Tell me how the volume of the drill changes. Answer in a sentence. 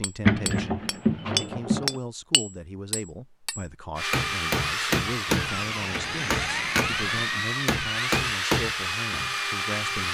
The volume of the drill stays about the same.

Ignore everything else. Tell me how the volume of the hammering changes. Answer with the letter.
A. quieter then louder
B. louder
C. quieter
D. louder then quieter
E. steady
A.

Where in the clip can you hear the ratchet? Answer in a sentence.
The ratchet can be heard from 0.2 to 2.0 s and from 5.2 to 7.2 s.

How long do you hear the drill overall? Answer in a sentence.
You can hear the drill for 6 seconds altogether.